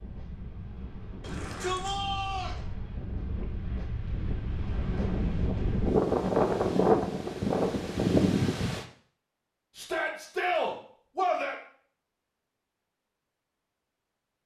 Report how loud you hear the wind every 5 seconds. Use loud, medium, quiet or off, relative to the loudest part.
quiet, loud, off.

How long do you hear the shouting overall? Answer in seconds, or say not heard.
3 s.